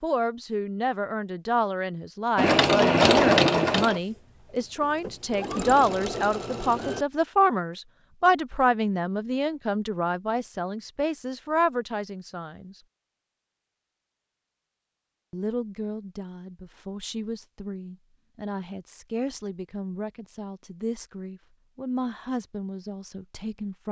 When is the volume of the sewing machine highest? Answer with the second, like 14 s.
3 s.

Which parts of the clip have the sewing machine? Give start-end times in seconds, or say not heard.
2.4-7.0.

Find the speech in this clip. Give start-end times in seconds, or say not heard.
0.0-12.8, 15.3-23.8.